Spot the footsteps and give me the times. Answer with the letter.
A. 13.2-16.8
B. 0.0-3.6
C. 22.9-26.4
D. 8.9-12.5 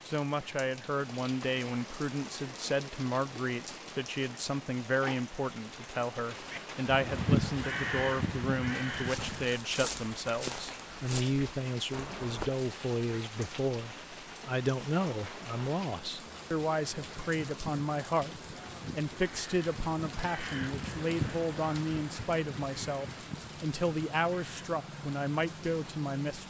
D.